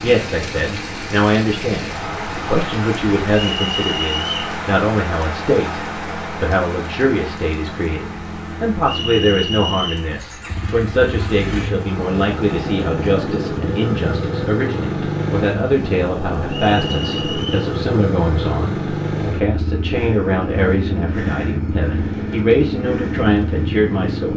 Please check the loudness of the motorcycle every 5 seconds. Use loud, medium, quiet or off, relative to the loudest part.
quiet, medium, loud, loud, loud.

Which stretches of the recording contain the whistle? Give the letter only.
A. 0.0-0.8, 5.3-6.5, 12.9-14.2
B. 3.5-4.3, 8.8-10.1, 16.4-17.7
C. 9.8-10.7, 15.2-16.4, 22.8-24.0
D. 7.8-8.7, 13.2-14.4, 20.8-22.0
B.